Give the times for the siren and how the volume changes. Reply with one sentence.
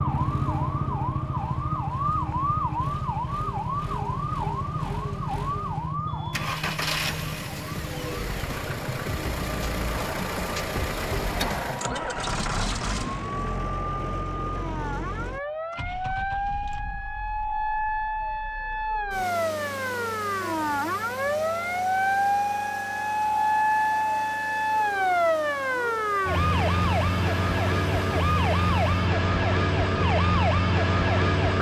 The siren can be heard from 0.0 to 31.5 s, getting quieter then louder.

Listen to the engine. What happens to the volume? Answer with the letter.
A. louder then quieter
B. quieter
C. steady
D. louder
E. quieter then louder
A.